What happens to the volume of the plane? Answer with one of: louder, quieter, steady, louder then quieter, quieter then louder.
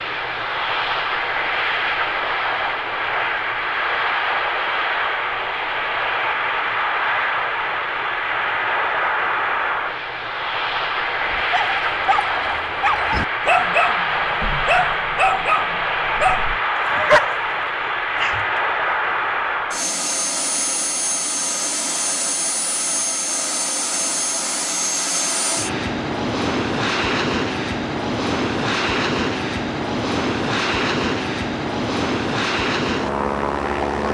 steady.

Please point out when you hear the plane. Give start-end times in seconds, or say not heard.
0.0-34.0.